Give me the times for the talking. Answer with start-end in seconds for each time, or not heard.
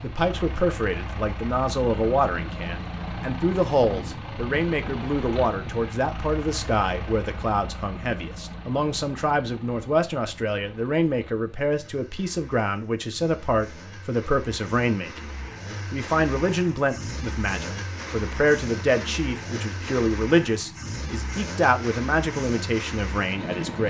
0.0-15.3, 15.9-23.8.